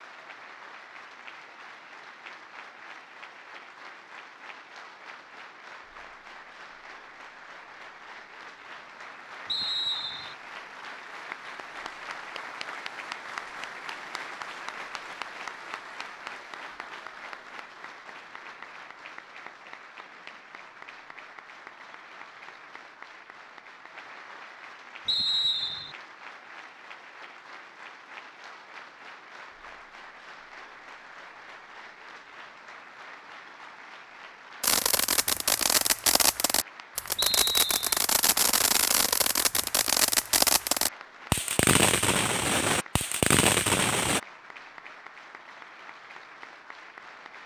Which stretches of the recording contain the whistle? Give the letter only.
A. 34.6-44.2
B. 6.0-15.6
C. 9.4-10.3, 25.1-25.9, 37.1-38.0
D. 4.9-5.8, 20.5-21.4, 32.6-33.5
C.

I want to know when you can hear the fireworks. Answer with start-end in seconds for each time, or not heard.
34.6-44.2.